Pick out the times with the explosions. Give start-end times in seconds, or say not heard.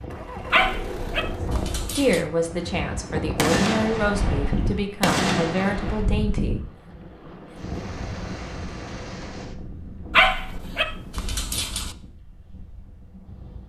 3.4-6.0.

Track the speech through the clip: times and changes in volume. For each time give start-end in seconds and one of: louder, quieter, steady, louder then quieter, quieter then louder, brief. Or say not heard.
1.9-6.6 steady.